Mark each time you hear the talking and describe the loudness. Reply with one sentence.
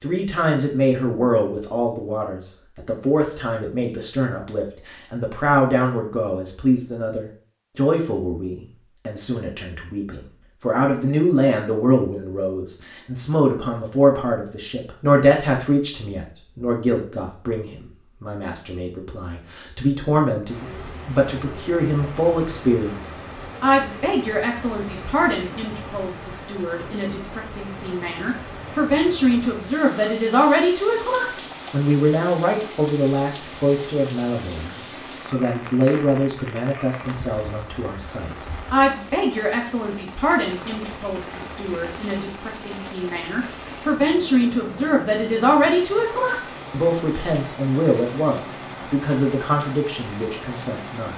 You can hear the talking from 0.0 to 51.1 s, at a steady volume.